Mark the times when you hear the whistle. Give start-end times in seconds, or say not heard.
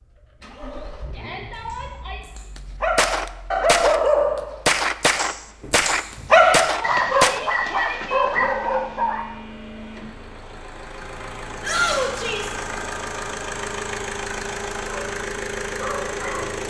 not heard.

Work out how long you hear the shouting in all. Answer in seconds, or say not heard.
4 s.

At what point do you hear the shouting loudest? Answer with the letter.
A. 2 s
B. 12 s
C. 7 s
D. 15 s
B.